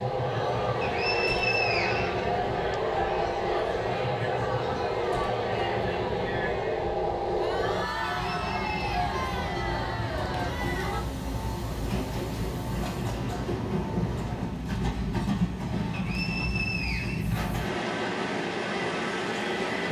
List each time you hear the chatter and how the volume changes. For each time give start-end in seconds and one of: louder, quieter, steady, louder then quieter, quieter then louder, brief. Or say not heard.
0.1-11.1 steady.